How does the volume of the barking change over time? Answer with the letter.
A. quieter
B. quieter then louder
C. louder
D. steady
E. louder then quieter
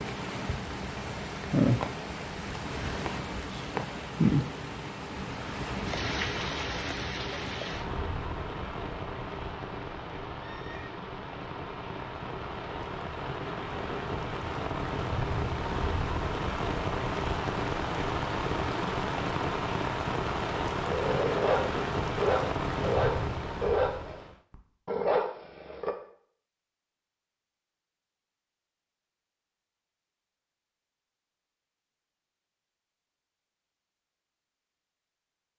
B.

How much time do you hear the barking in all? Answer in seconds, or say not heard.
5 s.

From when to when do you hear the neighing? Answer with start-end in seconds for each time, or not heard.
10.3-11.0.